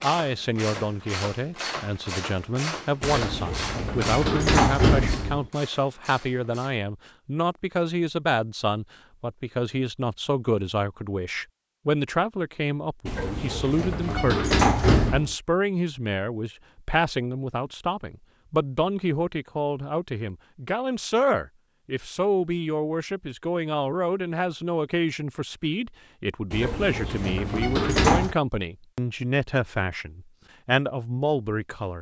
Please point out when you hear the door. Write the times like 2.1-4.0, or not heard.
3.0-5.5, 13.1-15.3, 26.5-28.4.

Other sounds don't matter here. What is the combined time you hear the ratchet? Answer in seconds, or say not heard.
7 s.